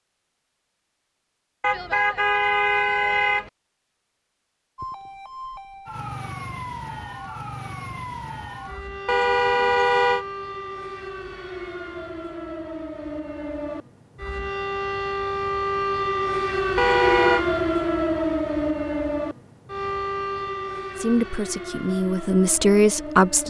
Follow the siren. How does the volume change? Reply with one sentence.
The volume of the siren goes up, then down.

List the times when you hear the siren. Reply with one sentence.
You can hear the siren from 4.8 to 23.4 s.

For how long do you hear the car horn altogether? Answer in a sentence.
You can hear the car horn for 4 seconds altogether.